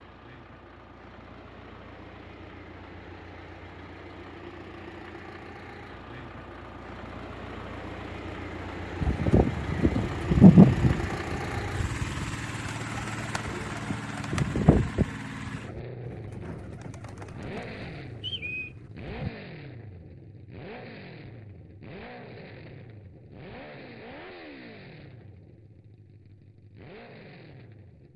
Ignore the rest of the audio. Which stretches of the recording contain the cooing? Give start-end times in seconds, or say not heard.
9.0-19.3.